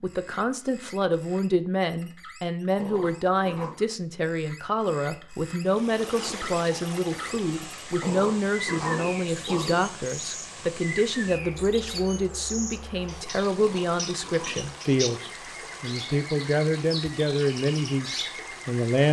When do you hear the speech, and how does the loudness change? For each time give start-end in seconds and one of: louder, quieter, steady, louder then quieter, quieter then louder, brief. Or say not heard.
0.0-19.0 steady.